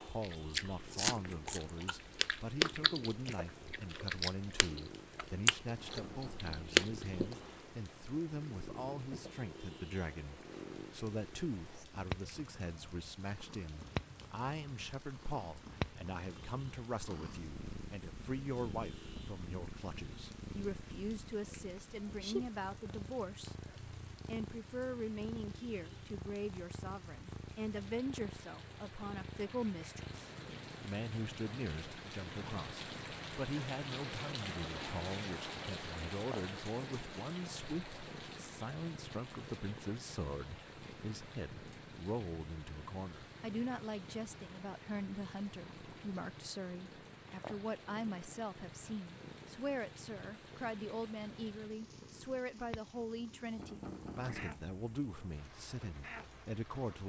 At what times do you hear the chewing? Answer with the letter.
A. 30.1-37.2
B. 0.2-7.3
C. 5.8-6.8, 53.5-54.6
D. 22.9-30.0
B.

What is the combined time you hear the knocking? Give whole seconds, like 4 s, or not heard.
2 s.